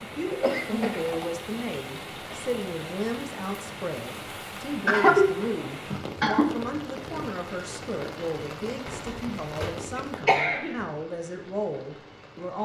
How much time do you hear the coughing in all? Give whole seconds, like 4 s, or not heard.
4 s.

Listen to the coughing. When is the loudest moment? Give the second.
5 s.